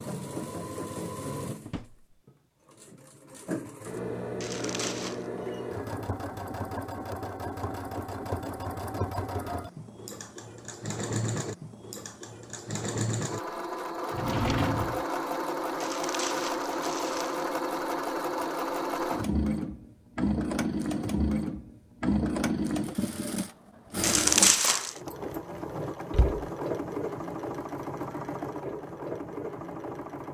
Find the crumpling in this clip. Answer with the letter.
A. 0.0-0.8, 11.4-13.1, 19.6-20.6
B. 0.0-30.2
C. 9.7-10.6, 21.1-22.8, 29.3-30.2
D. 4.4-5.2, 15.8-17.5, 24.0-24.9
D.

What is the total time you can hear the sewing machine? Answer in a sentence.
The sewing machine can be heard for 30 seconds in total.